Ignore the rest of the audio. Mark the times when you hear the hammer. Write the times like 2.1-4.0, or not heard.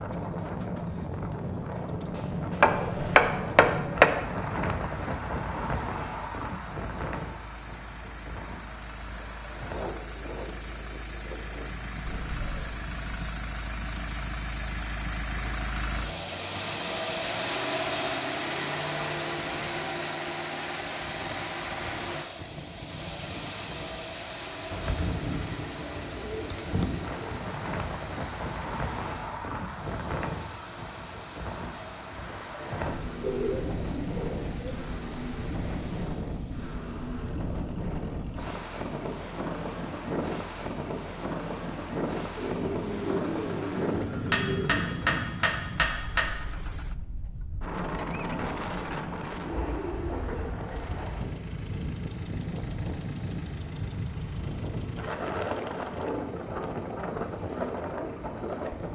2.6-4.1, 44.3-46.3.